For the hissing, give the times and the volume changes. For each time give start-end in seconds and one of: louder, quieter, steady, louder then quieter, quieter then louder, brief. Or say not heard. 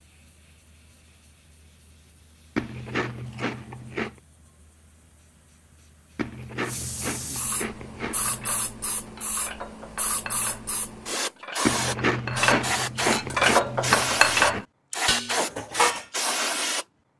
0.0-17.1 louder.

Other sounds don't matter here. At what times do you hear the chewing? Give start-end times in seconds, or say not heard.
2.5-4.2, 6.2-8.6, 11.7-14.7.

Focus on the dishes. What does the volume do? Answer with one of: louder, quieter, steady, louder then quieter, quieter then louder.
louder.